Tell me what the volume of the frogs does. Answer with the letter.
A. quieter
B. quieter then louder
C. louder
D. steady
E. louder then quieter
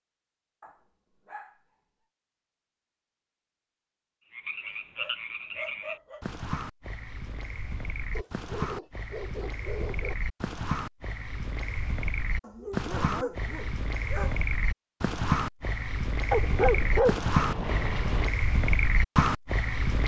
C.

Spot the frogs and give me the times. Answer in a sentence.
You can hear the frogs from 4.3 to 20.0 s.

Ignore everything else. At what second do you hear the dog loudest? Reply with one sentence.
The loudest moment of the dog is at 17 seconds.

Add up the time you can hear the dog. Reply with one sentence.
You can hear the dog for 9 seconds altogether.